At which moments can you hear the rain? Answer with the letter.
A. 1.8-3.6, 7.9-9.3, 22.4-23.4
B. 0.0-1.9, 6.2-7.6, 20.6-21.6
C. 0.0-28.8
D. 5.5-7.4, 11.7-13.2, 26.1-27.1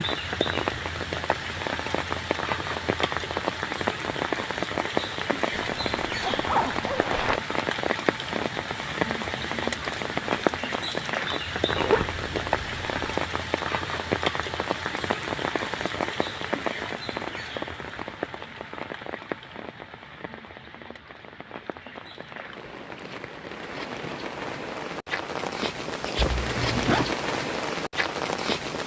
C.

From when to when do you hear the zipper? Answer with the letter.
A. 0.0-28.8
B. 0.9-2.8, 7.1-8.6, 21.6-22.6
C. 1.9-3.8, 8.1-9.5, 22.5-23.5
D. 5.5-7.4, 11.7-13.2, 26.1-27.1
D.